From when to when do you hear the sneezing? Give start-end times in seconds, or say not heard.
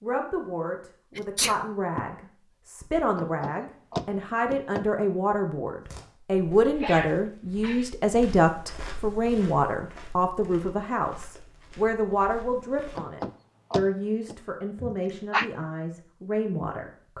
1.1-2.0, 6.7-7.9, 14.8-15.5.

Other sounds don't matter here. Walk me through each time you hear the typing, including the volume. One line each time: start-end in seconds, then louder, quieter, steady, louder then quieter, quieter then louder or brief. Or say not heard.
not heard.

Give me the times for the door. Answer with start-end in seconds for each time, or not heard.
3.1-4.9, 12.9-14.3.